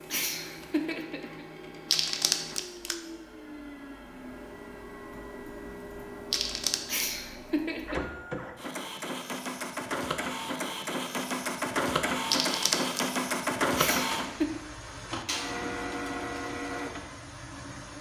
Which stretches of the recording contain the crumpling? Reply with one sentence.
You can hear the crumpling from 1.9 to 3.0 s, from 6.3 to 7.0 s and from 12.3 to 13.1 s.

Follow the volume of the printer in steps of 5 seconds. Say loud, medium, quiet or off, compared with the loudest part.
quiet, medium, loud, medium.